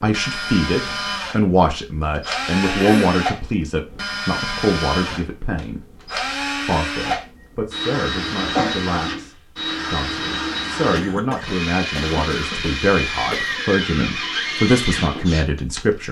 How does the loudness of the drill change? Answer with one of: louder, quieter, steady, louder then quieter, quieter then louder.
steady.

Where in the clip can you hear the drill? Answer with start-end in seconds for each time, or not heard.
0.0-16.0.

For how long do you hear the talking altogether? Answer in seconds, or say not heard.
16 s.